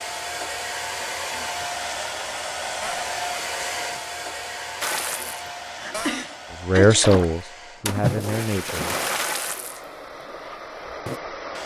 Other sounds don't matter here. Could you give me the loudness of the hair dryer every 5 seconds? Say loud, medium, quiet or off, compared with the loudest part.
loud, medium, medium.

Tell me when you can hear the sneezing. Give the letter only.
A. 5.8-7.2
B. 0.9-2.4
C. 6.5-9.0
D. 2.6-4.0
A.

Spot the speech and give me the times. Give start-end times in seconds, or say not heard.
6.5-9.0.